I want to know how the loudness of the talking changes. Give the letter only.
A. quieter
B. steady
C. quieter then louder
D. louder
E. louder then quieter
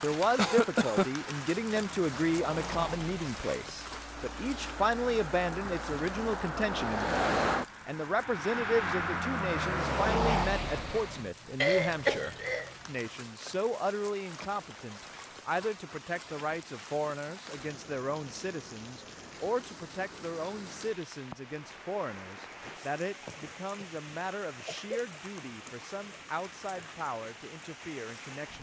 A.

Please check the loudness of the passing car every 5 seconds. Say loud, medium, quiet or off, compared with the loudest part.
medium, loud, loud, off, off, off.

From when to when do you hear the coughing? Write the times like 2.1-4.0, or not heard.
0.3-1.1, 11.6-12.7, 23.2-25.1.